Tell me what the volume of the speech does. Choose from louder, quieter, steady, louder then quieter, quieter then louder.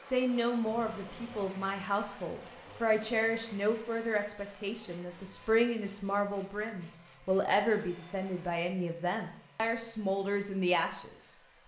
steady.